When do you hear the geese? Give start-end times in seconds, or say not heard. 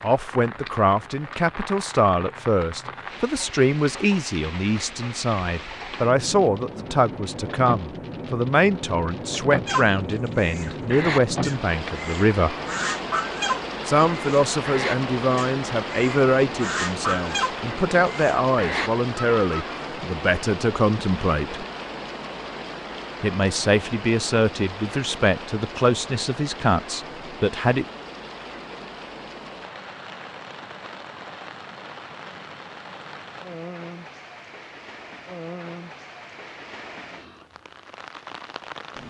9.7-19.7.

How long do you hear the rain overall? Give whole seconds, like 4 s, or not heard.
39 s.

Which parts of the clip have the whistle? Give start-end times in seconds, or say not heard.
not heard.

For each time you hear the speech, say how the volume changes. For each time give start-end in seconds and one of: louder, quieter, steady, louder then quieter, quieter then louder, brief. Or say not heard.
0.0-12.6 steady
13.8-21.6 steady
23.2-27.9 steady.